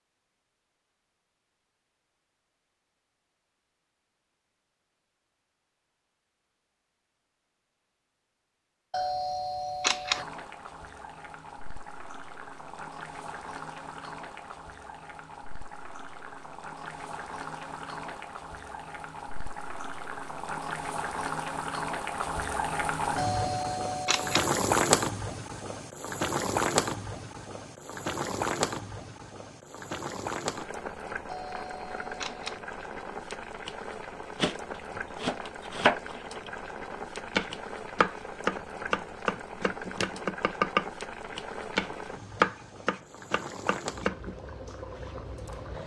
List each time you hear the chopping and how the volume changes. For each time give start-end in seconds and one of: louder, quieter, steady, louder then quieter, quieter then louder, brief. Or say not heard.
34.4-44.4 steady.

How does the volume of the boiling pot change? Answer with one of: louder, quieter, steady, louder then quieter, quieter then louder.
louder then quieter.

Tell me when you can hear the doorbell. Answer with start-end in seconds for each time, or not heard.
8.9-10.2, 23.1-24.5, 31.2-32.6.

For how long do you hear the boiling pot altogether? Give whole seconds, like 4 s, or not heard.
36 s.